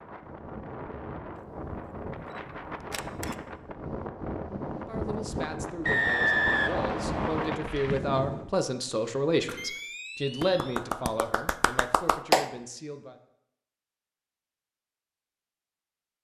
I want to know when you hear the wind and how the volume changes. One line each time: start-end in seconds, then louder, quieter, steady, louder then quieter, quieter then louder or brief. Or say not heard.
0.0-8.5 louder.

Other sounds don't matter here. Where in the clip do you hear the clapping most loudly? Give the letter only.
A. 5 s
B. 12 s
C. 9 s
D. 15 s
B.